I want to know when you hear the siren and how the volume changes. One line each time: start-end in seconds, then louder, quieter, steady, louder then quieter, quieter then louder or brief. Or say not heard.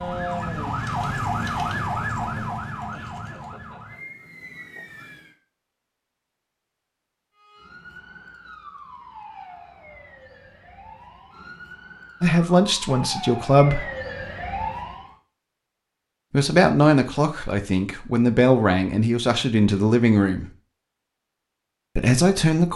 0.0-5.3 quieter
7.3-15.2 louder.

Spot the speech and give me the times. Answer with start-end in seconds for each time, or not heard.
12.2-13.8, 16.3-20.4, 21.9-22.7.